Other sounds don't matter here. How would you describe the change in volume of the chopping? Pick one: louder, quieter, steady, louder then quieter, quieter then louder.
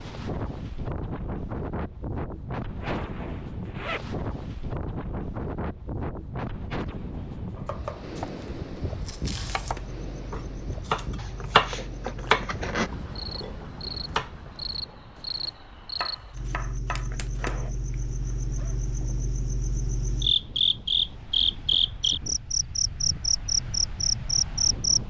louder then quieter.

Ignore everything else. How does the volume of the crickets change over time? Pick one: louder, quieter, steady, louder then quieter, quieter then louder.
louder.